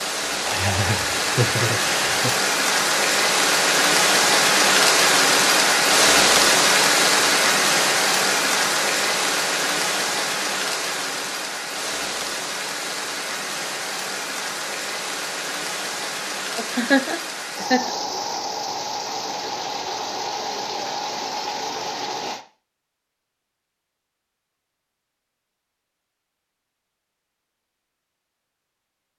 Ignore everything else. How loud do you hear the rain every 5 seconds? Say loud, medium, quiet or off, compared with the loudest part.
loud, loud, medium, medium, medium, off.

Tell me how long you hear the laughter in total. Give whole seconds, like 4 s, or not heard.
3 s.